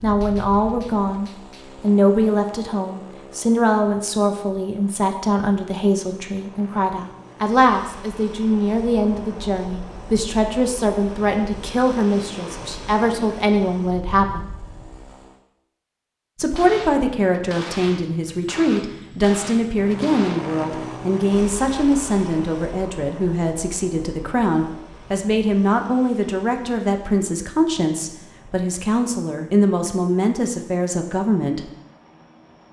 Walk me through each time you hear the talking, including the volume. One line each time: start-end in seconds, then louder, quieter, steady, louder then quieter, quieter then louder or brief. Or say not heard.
0.0-14.5 steady
16.4-31.7 steady.